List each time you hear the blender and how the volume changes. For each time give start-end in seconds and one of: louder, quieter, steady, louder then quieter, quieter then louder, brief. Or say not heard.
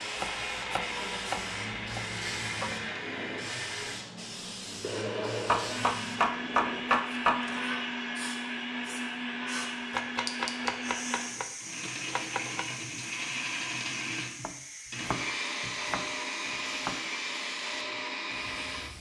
0.0-18.9 steady.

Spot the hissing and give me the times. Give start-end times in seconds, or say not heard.
0.0-18.9.